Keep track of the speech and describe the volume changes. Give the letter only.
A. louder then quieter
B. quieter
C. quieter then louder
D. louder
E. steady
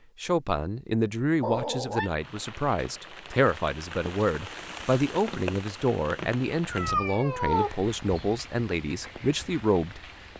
E.